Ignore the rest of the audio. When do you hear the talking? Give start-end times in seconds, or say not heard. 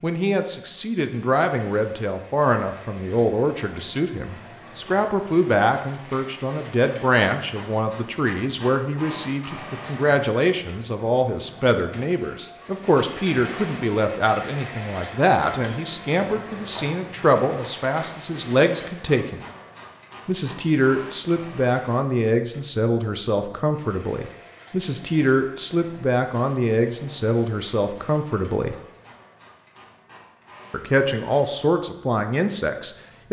0.0-19.4, 20.2-28.8, 30.7-33.2.